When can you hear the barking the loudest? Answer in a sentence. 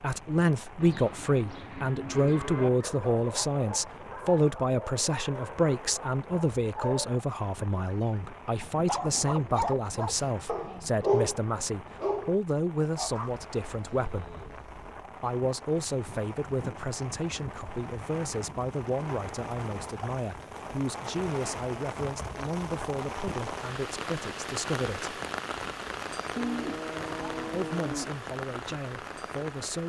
The volume of the barking peaks at 11 seconds.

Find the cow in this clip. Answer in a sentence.
The cow can be heard from 0.8 to 2.7 s, from 13.0 to 14.8 s and from 26.4 to 28.1 s.